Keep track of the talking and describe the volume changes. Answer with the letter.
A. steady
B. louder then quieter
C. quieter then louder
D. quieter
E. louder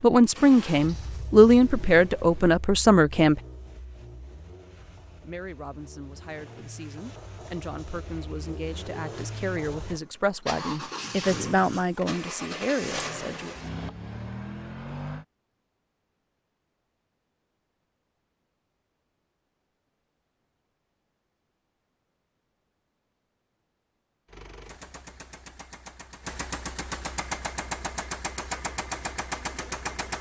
C.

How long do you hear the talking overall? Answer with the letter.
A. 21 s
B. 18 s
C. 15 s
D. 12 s
D.